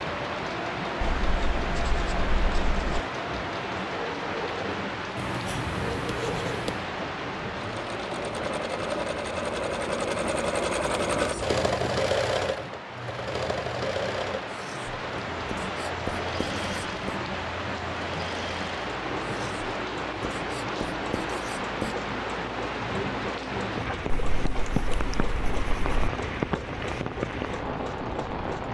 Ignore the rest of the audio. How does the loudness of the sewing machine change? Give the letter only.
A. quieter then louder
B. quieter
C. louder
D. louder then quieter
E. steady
D.